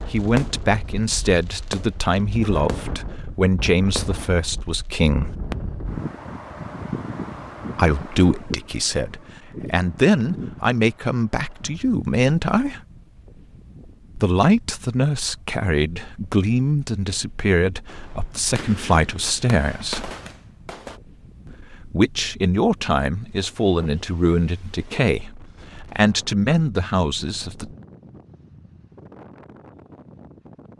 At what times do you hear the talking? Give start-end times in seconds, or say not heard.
0.0-5.3, 7.8-12.8, 14.2-20.1, 21.5-27.7.